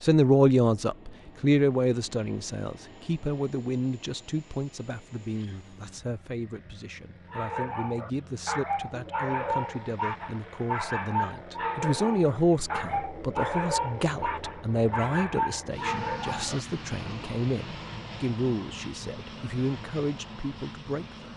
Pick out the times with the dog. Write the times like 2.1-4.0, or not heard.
7.3-16.6.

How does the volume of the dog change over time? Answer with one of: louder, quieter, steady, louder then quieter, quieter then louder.
steady.